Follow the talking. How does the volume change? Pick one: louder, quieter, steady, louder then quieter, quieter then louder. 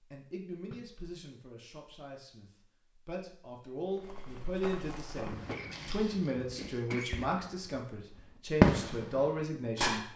louder.